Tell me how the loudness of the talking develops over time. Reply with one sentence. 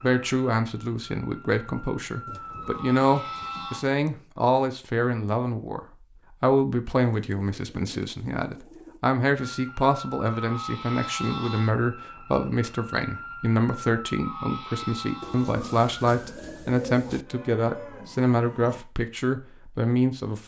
The loudness of the talking stays about the same.